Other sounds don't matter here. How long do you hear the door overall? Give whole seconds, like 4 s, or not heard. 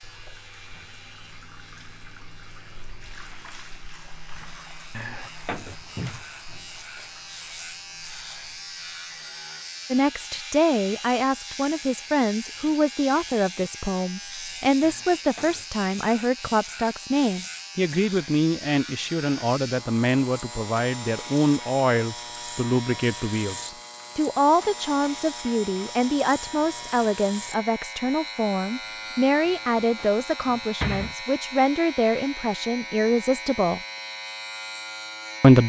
4 s.